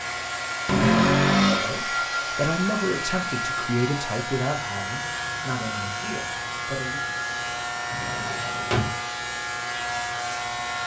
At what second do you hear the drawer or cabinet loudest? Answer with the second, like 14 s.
1 s.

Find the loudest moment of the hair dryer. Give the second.
2 s.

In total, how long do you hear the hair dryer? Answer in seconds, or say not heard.
11 s.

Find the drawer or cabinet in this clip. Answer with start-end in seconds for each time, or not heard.
0.7-1.8, 7.9-8.9.